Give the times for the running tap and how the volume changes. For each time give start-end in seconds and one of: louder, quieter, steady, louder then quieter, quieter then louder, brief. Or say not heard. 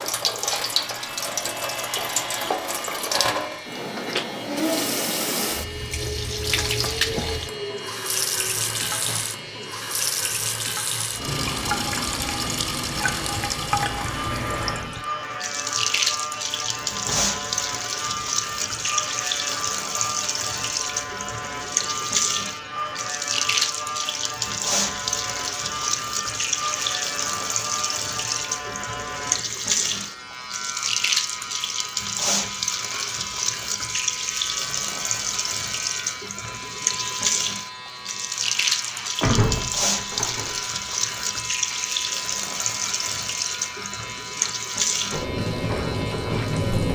0.0-46.9 steady.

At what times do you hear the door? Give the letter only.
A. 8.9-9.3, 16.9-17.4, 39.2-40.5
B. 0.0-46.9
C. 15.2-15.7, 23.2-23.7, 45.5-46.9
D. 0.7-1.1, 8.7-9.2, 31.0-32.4
A.